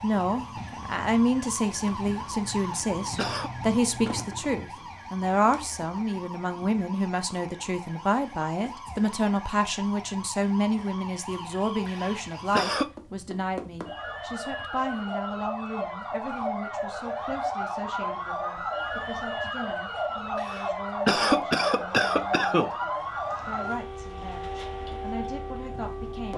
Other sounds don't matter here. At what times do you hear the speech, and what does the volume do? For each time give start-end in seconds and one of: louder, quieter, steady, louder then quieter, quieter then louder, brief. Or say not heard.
0.0-26.3 quieter.